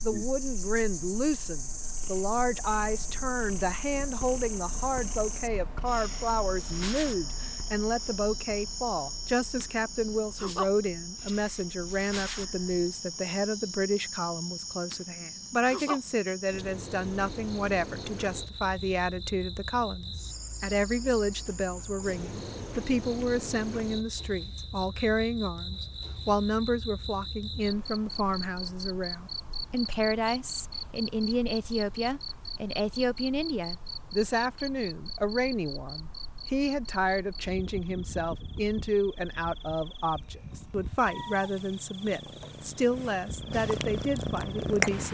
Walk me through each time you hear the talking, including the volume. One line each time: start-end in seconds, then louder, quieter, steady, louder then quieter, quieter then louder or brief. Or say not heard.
0.0-45.1 steady.